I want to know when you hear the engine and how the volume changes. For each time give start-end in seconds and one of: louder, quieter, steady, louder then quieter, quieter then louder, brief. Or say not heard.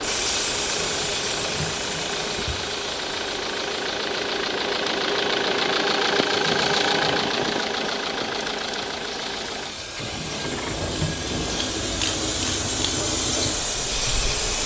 0.0-14.6 louder then quieter.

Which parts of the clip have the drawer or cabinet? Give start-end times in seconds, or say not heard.
0.8-2.6, 6.5-7.3, 10.2-11.7.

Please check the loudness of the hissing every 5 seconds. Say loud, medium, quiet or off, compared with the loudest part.
loud, medium, loud.